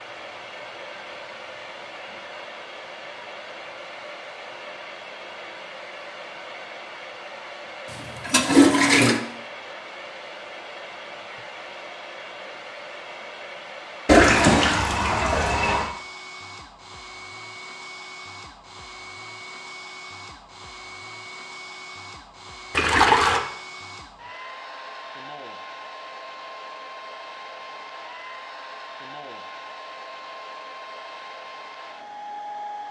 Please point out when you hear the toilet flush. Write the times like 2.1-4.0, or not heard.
8.2-9.2, 14.1-15.9, 22.7-23.4.